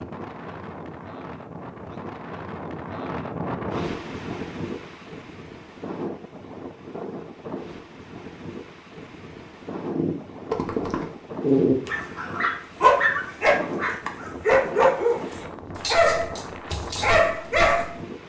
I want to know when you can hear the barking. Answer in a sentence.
The barking can be heard from 9.9 to 17.9 s.